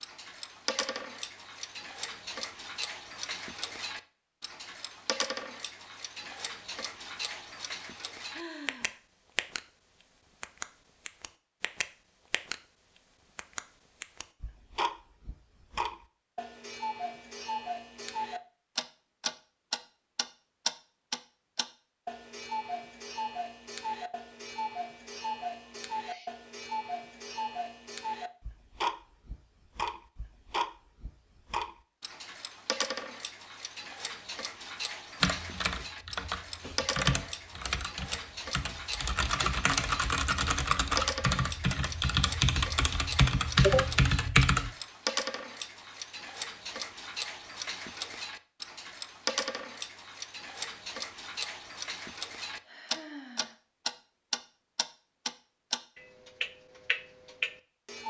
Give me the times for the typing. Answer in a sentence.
The typing can be heard from 35.2 to 44.7 s.